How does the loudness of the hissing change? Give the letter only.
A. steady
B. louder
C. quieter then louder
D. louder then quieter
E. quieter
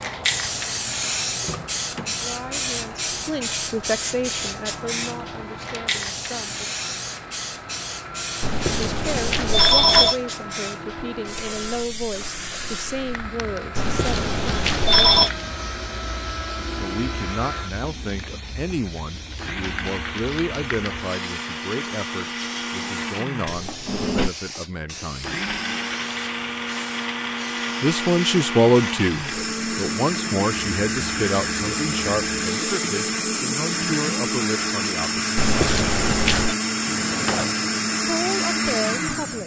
E.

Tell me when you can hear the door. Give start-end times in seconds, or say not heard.
1.4-2.1, 23.4-24.3, 36.8-37.8.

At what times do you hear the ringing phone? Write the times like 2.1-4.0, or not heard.
8.4-10.2, 13.8-15.3, 35.4-36.5.